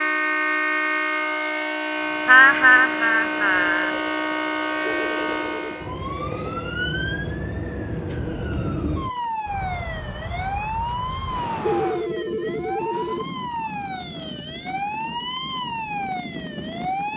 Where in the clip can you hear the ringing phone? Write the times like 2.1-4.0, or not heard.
4.8-5.6, 11.6-13.2.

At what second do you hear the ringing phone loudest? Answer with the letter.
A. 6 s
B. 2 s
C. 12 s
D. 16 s
C.